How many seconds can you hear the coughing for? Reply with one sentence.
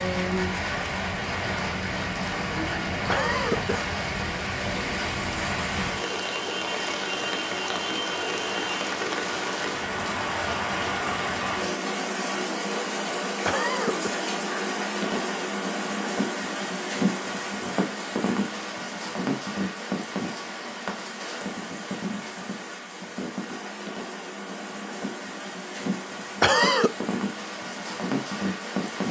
The coughing can be heard for 2 seconds in total.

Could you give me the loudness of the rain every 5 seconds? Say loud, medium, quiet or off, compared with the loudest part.
loud, loud, loud, loud, medium, loud.